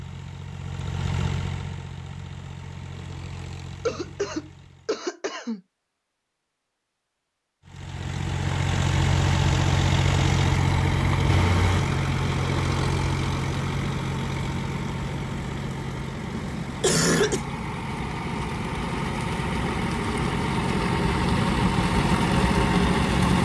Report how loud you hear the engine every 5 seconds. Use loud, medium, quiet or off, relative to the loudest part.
quiet, loud, loud, medium, loud.